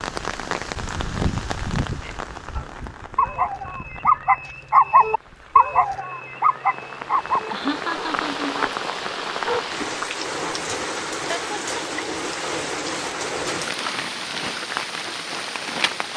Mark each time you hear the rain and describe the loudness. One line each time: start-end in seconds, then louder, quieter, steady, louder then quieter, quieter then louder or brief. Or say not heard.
0.0-16.1 quieter then louder.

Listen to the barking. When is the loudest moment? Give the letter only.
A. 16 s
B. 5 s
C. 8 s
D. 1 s
B.